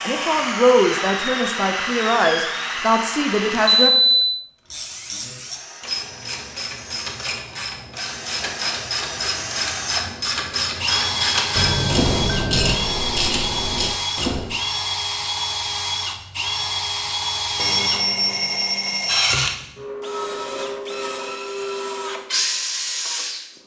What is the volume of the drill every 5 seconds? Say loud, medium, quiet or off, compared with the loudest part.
loud, medium, loud, loud, loud.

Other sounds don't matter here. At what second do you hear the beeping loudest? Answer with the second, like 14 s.
4 s.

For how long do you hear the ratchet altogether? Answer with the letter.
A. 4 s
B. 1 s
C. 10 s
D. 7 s
C.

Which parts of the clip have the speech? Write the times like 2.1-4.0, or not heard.
0.0-4.0.